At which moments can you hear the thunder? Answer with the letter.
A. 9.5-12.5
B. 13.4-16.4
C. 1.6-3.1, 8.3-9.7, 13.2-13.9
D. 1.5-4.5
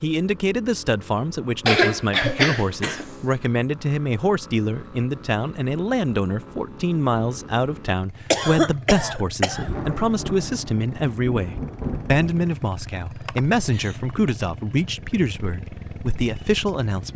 A.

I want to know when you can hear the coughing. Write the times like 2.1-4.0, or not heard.
1.6-3.1, 8.3-9.7, 13.2-13.9.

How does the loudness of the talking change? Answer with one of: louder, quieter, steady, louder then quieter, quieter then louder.
steady.